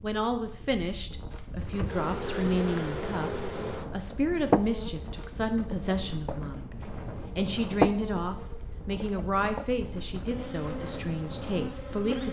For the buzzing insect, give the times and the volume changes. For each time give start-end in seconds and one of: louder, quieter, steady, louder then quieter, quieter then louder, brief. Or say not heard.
1.6-12.2 louder then quieter.